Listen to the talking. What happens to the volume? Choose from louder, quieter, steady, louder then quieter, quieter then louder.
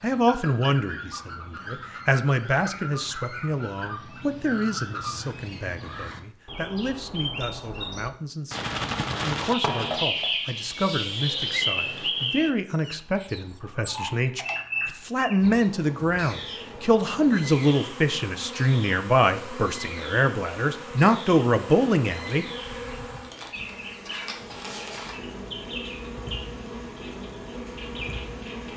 quieter then louder.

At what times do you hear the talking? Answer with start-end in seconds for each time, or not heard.
0.0-22.4.